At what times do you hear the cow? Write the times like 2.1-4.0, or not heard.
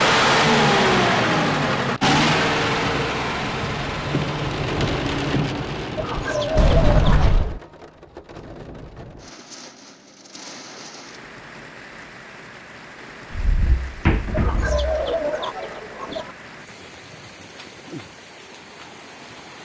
not heard.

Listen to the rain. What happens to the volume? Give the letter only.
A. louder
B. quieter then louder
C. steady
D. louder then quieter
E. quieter
E.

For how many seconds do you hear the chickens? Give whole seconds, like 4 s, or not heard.
4 s.